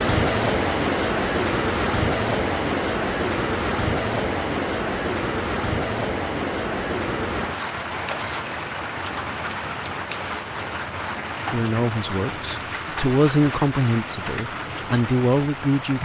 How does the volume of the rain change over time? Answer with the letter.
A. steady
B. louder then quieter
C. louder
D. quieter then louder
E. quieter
E.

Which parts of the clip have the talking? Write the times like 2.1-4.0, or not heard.
11.5-15.9.